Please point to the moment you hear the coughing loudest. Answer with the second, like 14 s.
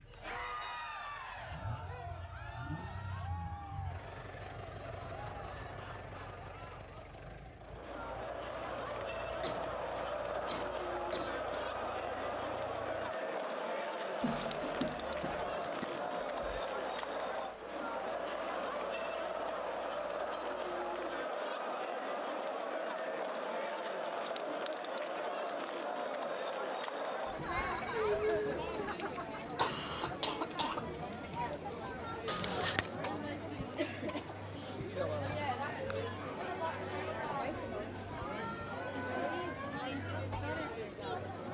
30 s.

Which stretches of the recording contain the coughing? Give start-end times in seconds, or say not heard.
9.4-11.7, 14.2-15.8, 29.1-30.9.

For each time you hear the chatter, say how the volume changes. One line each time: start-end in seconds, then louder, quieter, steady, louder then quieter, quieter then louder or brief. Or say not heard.
0.0-41.4 louder.